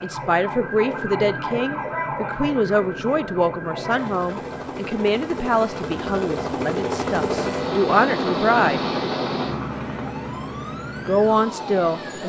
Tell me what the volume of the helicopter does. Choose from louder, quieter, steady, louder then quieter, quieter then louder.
louder then quieter.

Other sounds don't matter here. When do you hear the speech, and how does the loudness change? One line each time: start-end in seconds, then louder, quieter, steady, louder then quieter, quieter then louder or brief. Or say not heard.
0.0-8.8 steady
10.9-12.2 brief.